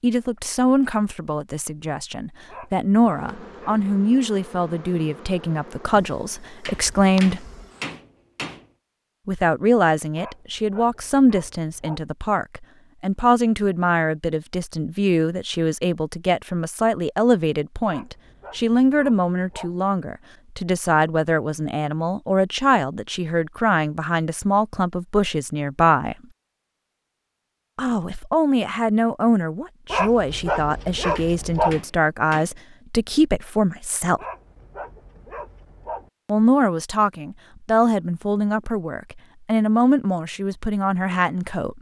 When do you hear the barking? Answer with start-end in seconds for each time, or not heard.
2.5-3.8, 10.2-12.1, 17.9-19.8, 29.9-31.8, 34.1-36.1.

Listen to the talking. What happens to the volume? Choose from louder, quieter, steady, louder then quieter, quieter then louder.
steady.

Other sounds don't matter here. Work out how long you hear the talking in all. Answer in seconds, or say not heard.
36 s.